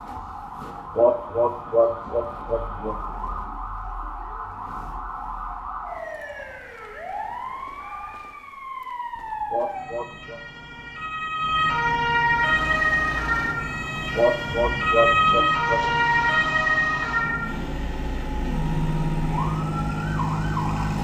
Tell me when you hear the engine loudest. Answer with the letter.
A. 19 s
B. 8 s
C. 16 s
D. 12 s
A.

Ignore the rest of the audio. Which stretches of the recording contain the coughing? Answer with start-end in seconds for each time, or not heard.
0.9-3.0, 9.5-10.4, 14.2-15.8.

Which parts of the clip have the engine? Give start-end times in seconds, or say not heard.
12.3-20.9.